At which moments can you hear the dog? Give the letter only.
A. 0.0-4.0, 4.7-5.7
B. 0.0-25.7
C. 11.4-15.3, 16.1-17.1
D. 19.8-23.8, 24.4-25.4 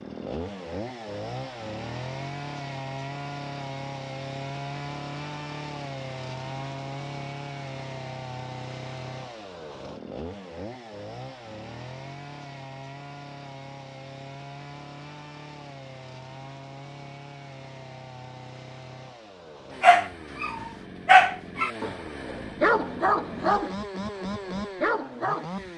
D.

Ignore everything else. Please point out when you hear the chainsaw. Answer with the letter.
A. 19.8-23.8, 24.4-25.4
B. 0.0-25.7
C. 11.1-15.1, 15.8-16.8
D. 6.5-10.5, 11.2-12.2
B.